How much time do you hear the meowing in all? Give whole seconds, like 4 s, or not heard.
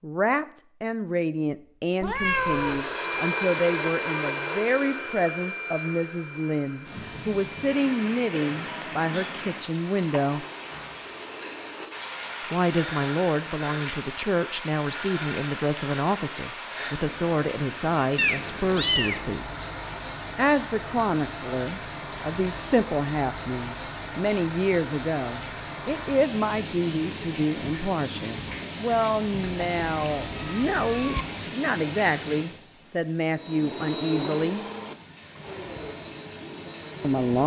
4 s.